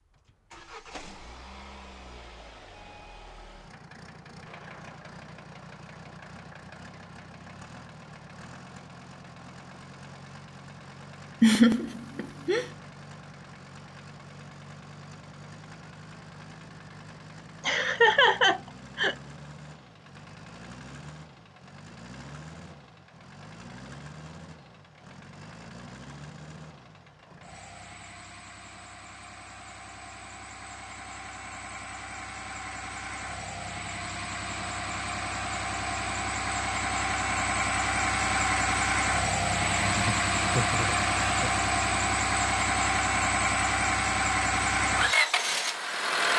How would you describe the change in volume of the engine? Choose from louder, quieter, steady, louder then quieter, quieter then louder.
louder.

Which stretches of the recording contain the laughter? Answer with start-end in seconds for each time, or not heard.
11.4-12.7, 17.6-19.1, 39.6-41.5.